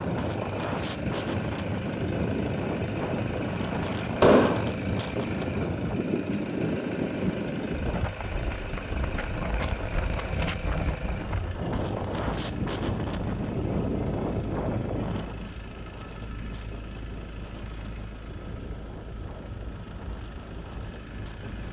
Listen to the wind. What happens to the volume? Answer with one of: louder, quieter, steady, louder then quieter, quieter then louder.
quieter.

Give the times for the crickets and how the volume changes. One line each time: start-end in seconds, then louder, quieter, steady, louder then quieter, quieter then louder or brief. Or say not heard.
not heard.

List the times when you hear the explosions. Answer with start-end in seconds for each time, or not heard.
4.2-4.7.